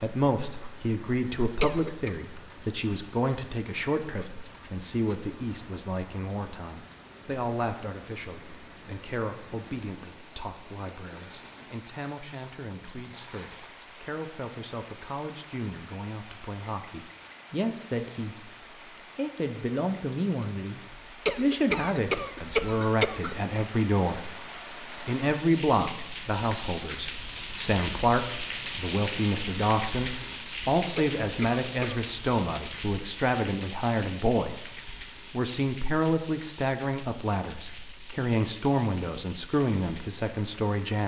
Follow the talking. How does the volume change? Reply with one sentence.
The volume of the talking goes down, then up.